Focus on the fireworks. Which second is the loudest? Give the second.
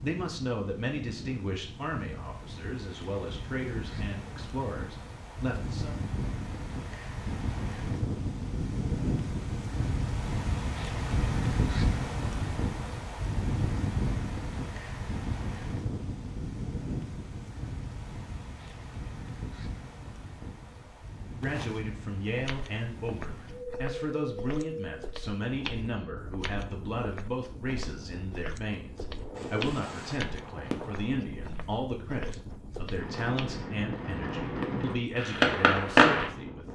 36 s.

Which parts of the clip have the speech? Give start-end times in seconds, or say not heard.
0.0-6.0, 20.8-36.7.